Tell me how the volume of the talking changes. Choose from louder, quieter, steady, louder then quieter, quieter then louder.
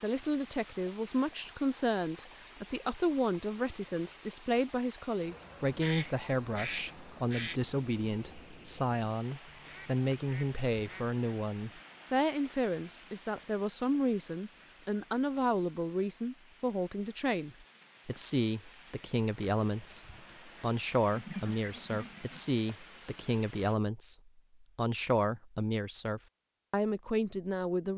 steady.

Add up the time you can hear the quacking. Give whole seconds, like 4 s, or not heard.
5 s.